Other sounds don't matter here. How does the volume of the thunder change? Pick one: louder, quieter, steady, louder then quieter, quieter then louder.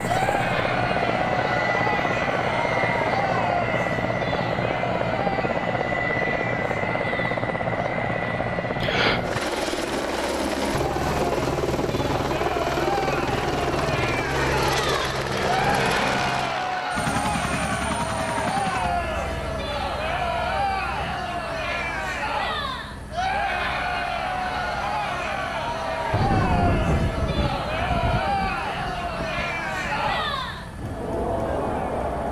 quieter.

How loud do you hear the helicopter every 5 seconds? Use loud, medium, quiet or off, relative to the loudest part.
loud, loud, loud, loud, quiet, quiet, quiet.